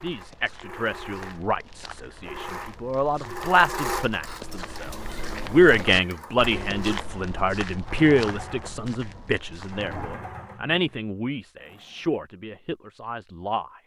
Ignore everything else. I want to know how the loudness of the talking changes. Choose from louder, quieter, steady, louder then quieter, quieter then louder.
louder then quieter.